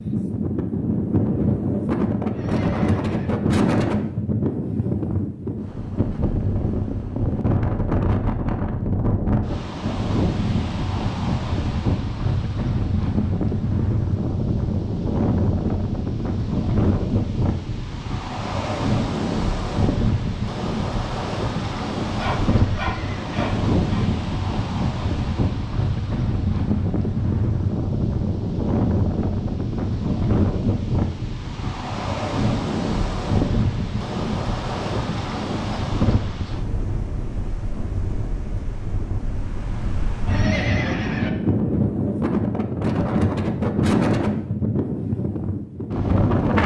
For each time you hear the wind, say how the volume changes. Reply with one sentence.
You can hear the wind from 0.0 to 46.6 s, at a steady volume.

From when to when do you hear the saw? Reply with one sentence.
You can hear the saw from 22.1 to 24.1 s.